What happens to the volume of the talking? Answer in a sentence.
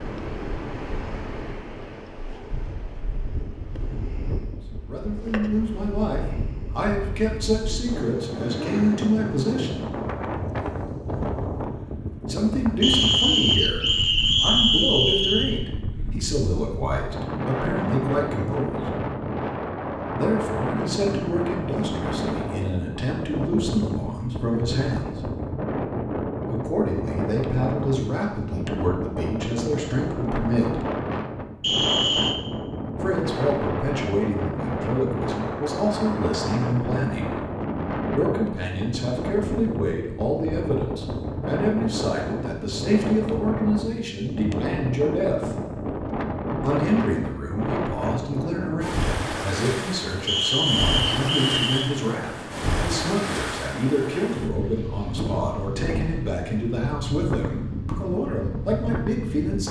The loudness of the talking stays about the same.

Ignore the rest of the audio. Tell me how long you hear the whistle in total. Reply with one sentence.
The whistle can be heard for 5 seconds in total.